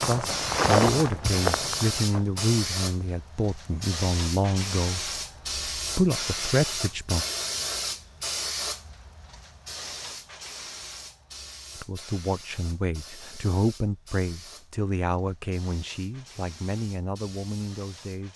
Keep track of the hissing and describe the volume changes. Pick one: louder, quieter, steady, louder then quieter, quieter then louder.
quieter.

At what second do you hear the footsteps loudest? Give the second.
1 s.